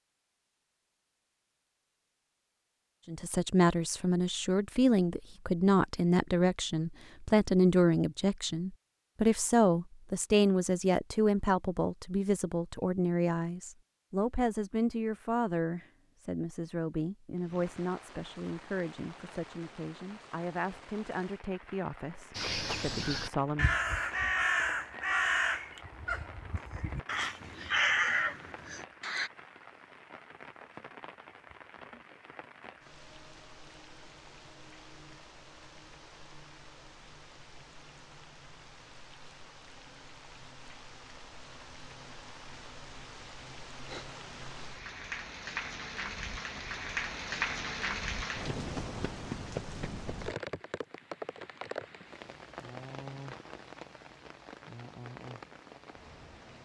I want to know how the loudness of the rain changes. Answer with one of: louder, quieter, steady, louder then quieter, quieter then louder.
louder.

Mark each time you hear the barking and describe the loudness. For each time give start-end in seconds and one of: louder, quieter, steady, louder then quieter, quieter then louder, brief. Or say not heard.
not heard.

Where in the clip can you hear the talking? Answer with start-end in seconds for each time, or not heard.
3.0-23.8.